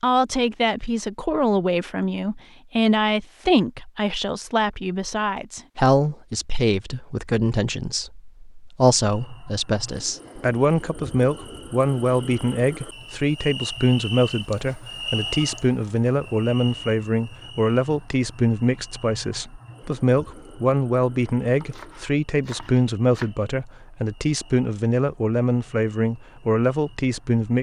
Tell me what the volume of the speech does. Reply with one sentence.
The volume of the speech stays about the same.